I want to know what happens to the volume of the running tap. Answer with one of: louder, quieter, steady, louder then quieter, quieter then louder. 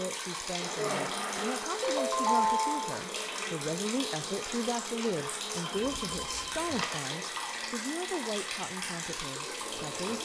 steady.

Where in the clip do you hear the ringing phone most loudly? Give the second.
2 s.